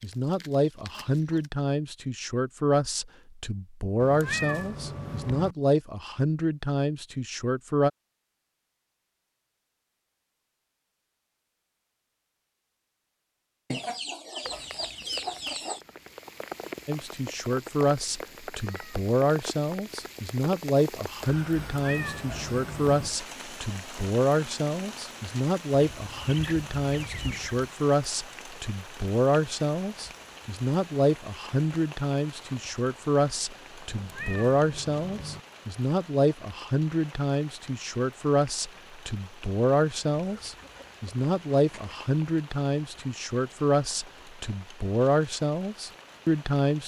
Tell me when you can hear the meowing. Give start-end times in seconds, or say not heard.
4.0-5.5, 21.6-23.1, 33.9-35.4.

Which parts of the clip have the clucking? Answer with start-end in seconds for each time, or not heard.
0.0-1.5, 13.7-15.8, 25.9-27.7, 40.1-42.1.